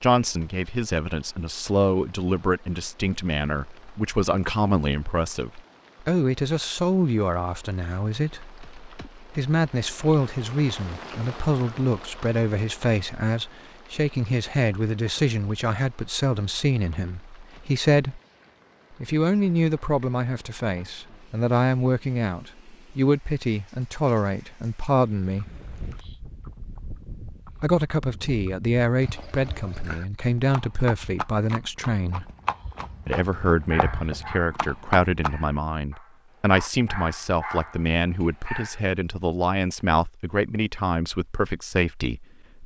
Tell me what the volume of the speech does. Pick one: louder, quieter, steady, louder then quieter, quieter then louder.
steady.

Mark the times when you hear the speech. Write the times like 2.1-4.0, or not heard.
0.0-18.2, 19.0-25.5, 27.6-32.3, 33.0-42.6.